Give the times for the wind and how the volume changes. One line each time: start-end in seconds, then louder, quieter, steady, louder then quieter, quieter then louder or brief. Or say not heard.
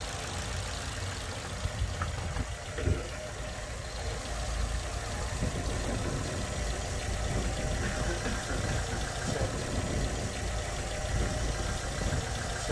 5.0-12.6 steady.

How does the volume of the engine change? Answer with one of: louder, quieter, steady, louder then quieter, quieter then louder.
steady.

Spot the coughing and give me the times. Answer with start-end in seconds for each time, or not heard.
2.8-3.2, 7.8-9.1.